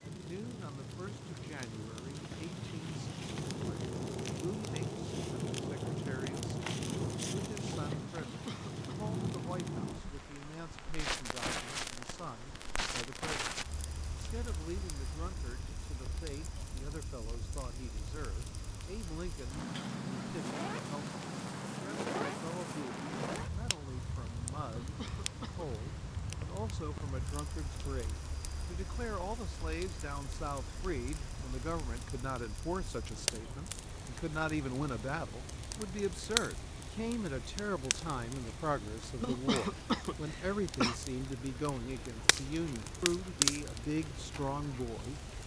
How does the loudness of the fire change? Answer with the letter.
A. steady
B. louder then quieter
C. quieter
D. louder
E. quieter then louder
E.